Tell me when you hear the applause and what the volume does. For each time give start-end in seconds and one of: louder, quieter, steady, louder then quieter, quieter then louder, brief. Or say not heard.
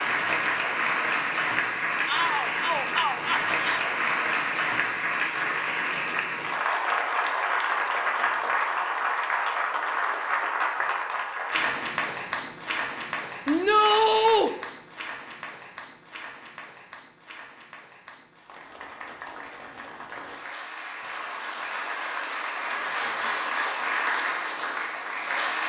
0.0-25.6 quieter then louder.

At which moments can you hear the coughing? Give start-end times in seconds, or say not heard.
not heard.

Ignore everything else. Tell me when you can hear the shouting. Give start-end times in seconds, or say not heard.
2.0-3.9, 13.4-14.5.